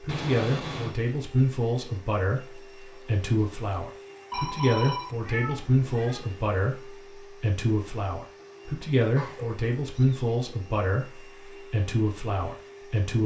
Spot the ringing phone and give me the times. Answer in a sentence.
You can hear the ringing phone from 4.3 to 5.6 s.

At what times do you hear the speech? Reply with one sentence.
The speech can be heard from 0.0 to 13.2 s.